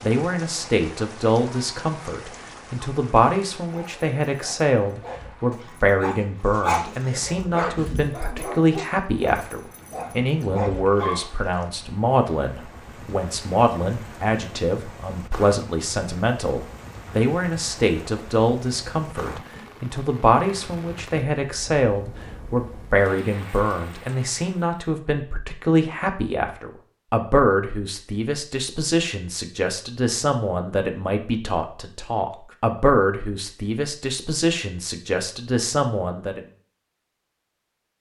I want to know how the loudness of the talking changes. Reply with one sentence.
The volume of the talking stays about the same.